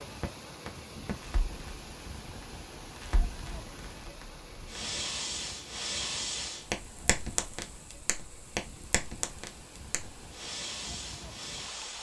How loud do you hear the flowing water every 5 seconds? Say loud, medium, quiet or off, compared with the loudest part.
loud, medium, loud.